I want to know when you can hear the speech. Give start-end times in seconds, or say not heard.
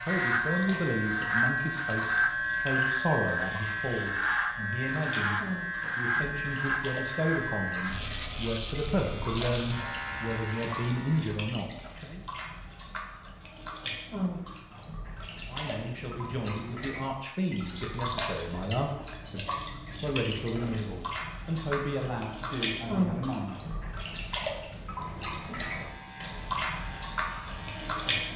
0.0-12.2, 15.4-23.8.